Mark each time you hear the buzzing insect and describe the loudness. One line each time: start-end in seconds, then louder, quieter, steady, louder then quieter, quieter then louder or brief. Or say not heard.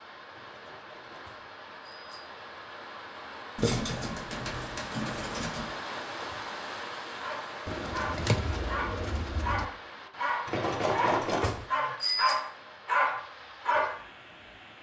not heard.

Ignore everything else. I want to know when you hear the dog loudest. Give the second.
13 s.